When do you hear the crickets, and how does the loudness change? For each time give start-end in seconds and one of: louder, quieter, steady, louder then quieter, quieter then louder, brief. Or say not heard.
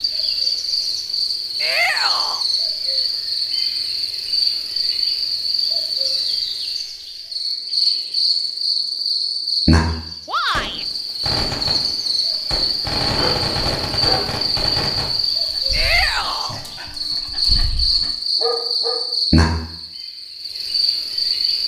0.0-21.6 steady.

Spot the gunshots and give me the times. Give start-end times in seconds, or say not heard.
10.5-15.1.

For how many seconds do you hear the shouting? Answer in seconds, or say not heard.
2 s.